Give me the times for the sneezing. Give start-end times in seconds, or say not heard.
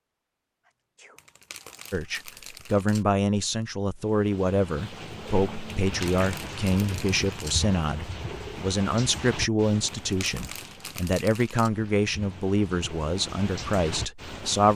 0.7-1.2.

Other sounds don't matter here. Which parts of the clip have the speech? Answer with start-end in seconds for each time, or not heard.
1.9-14.7.